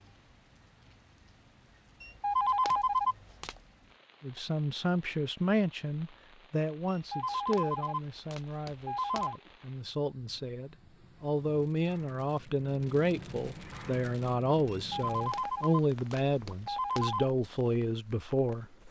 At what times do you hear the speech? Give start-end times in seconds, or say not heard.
4.2-18.6.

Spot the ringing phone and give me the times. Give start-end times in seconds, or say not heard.
2.0-3.6, 7.1-9.3, 14.9-17.3.